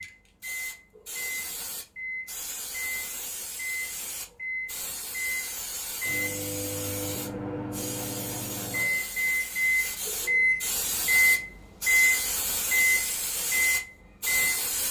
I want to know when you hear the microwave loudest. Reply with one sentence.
The loudest moment of the microwave is at 12 seconds.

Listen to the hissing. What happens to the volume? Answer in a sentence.
The volume of the hissing goes up.